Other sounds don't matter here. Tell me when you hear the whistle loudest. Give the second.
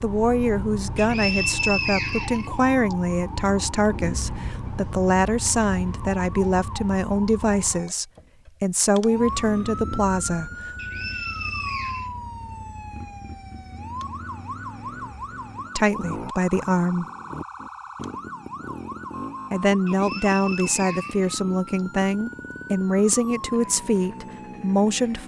2 s.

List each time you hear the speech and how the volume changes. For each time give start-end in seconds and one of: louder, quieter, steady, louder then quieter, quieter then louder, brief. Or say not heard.
0.0-10.7 steady
15.8-17.1 brief
19.5-25.2 steady.